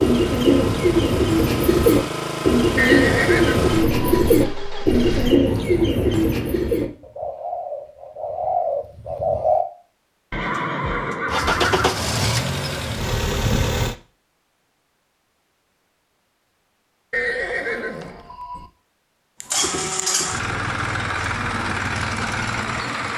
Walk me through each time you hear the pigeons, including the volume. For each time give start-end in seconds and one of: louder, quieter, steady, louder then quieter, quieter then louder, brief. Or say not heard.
0.0-9.7 quieter.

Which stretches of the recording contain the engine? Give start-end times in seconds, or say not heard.
0.0-5.4, 11.2-13.9, 19.4-23.1.